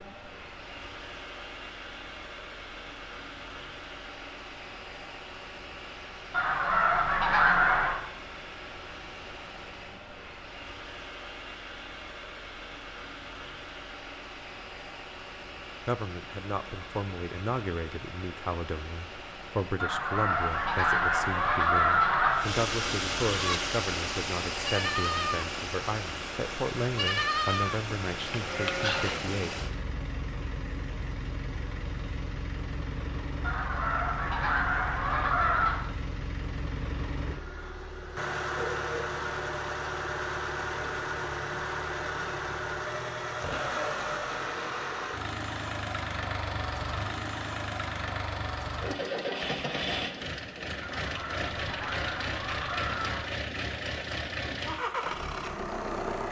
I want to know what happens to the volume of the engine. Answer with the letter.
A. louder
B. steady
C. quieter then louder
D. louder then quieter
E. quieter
A.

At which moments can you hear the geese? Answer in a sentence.
You can hear the geese from 6.3 to 8.0 s, from 19.8 to 22.4 s, from 33.4 to 35.8 s and from 50.8 to 53.3 s.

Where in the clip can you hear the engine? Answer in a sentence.
You can hear the engine from 0.0 to 56.2 s.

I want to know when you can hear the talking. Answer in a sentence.
The talking can be heard from 15.8 to 29.6 s.